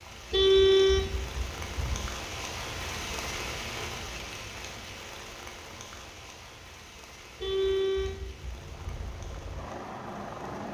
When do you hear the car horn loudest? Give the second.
1 s.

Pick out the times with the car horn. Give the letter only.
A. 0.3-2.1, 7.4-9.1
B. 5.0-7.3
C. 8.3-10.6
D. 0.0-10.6
A.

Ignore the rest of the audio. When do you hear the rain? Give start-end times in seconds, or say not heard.
0.0-10.6.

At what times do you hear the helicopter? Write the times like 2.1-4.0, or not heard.
8.3-10.6.